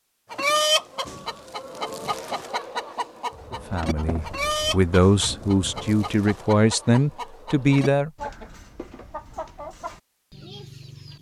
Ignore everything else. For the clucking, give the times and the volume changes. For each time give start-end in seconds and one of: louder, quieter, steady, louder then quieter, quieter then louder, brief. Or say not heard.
0.3-11.1 quieter.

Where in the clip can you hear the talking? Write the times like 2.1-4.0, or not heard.
3.5-8.1.